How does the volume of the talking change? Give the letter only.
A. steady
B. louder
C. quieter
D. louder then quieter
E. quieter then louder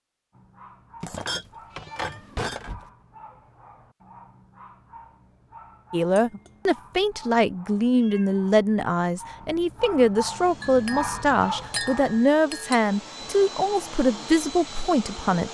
A.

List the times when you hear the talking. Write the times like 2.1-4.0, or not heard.
5.9-15.4.